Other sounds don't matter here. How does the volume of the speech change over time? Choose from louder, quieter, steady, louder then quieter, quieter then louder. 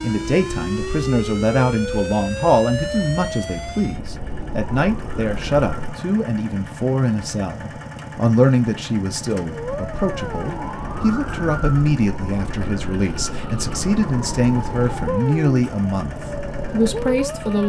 steady.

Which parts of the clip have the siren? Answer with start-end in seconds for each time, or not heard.
0.0-6.0, 9.4-17.6.